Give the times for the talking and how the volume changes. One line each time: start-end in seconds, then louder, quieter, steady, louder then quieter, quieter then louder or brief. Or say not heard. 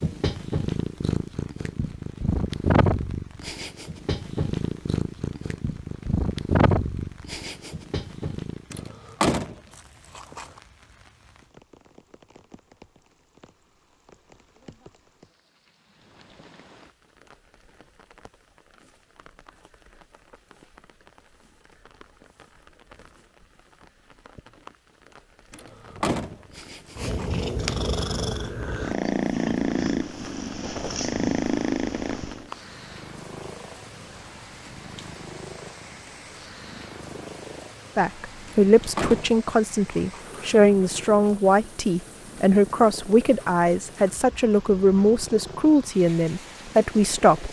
38.0-47.4 steady.